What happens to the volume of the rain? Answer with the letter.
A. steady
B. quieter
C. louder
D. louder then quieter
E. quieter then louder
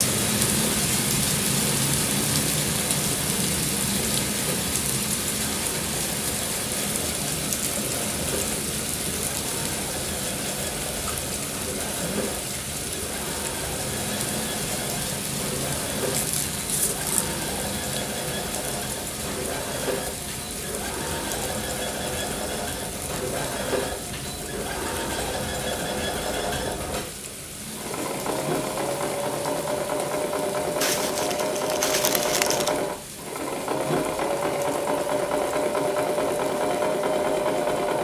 B.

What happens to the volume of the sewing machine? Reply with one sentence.
The volume of the sewing machine goes up.